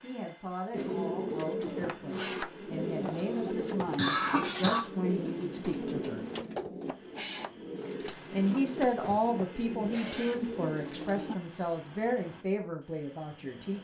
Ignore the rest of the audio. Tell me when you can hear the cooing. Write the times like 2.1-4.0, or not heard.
0.7-11.3.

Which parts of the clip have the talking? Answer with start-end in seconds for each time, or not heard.
0.0-6.2, 8.3-13.7.